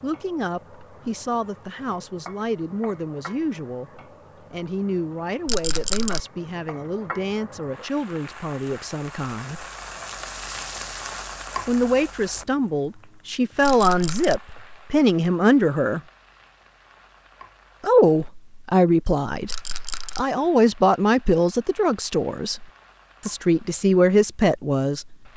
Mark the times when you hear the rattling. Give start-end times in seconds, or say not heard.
5.5-6.2, 13.6-14.4, 19.4-20.2.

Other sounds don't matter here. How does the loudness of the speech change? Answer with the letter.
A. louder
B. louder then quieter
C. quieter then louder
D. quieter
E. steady
A.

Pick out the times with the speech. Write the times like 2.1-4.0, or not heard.
0.0-9.7, 11.7-16.0, 17.8-25.1.